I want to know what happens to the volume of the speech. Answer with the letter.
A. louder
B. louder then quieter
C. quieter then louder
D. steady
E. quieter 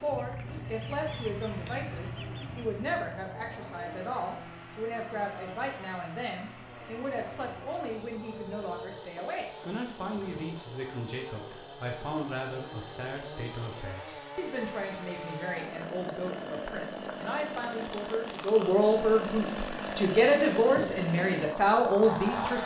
A.